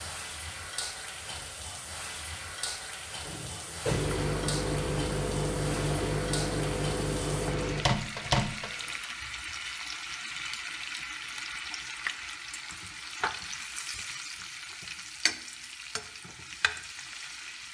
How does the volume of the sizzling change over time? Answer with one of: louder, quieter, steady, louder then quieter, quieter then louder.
steady.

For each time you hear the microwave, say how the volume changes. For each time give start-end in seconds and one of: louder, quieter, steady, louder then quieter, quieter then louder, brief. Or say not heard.
3.2-8.8 steady.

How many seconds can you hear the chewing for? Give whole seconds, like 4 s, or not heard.
not heard.